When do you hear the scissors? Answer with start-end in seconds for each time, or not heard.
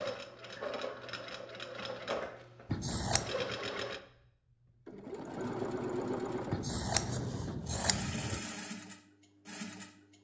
2.7-3.4, 6.5-8.4.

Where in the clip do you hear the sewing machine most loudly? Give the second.
6 s.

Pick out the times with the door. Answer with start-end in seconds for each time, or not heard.
not heard.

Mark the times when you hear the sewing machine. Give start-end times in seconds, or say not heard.
0.0-10.1.